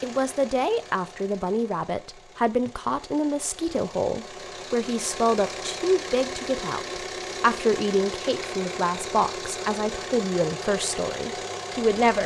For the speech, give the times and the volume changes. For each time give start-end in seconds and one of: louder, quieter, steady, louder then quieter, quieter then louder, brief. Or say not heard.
0.0-12.2 steady.